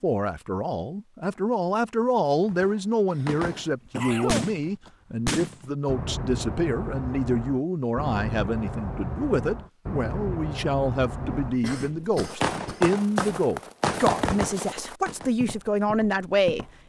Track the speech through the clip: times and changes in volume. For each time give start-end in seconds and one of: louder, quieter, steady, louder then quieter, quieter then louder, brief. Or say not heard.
0.0-16.6 steady.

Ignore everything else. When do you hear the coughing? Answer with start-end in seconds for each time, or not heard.
3.1-4.9, 11.4-12.8.